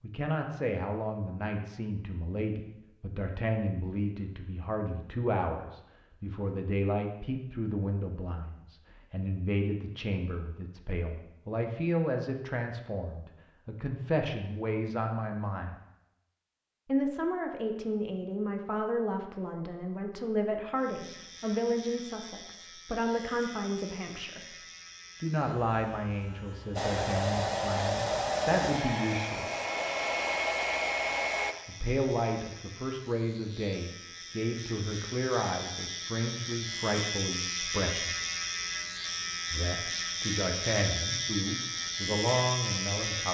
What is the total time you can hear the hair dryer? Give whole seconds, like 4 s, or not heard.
5 s.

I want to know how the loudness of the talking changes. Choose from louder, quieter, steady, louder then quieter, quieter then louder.
steady.